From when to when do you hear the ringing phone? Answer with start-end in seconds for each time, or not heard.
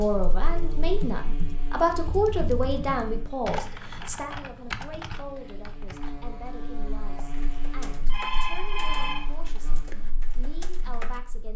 8.1-9.2.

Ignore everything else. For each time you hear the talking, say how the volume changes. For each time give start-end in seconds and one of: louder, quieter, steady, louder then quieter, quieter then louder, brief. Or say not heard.
0.0-11.5 quieter.